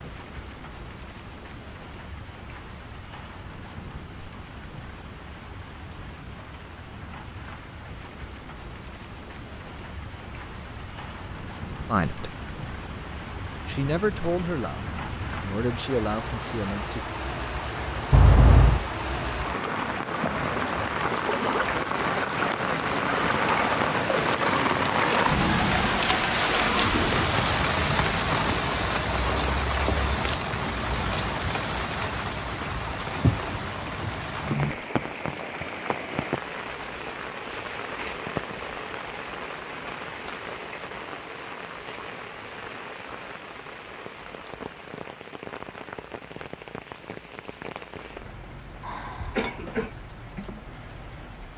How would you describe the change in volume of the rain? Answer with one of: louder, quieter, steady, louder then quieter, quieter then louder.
louder then quieter.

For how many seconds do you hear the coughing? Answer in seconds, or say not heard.
2 s.